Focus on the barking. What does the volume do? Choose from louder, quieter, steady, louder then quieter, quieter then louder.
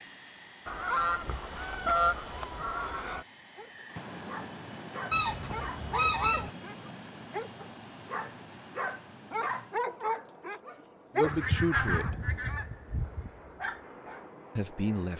louder then quieter.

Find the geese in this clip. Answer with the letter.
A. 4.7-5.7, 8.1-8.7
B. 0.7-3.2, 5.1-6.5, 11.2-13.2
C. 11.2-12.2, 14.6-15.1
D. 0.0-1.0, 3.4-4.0
B.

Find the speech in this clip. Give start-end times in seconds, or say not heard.
11.2-12.2, 14.6-15.1.